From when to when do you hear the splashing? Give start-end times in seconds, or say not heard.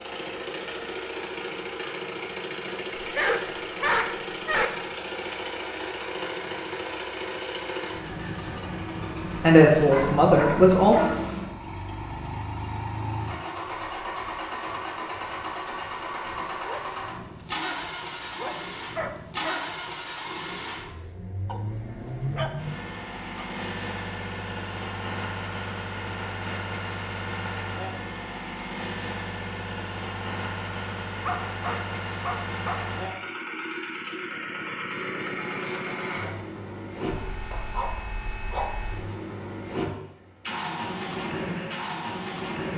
not heard.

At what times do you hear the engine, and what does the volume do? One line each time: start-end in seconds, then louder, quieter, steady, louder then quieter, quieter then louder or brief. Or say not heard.
0.0-42.7 steady.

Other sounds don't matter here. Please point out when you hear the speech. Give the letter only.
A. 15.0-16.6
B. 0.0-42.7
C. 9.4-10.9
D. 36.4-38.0
C.